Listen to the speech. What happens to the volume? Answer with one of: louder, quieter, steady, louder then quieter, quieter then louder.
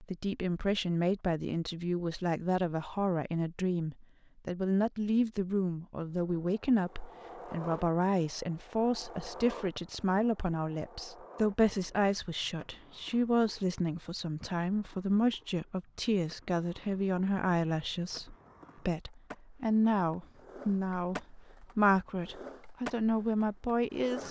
steady.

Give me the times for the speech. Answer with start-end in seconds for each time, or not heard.
0.0-24.2.